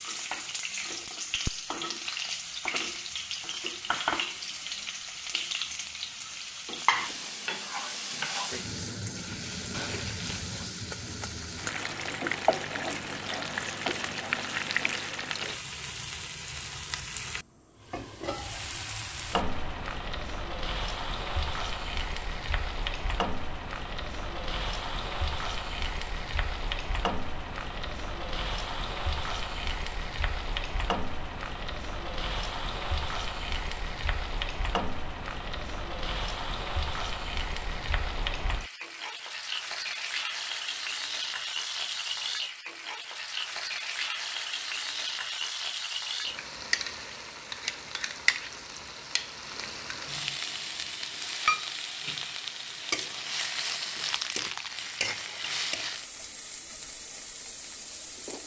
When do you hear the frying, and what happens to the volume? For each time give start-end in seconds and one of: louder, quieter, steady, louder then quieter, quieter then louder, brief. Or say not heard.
0.0-58.4 steady.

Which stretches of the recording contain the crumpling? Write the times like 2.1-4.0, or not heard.
9.7-10.7, 54.0-55.1.